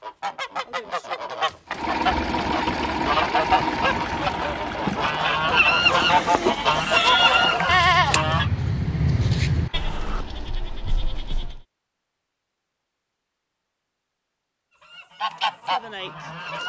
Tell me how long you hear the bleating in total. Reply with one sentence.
You can hear the bleating for 6 seconds altogether.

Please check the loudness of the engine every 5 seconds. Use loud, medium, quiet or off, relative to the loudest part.
loud, medium, quiet, off.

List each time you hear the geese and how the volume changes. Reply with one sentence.
The geese can be heard from 0.0 to 8.4 s, getting louder; and briefly from 14.8 to 16.6 s.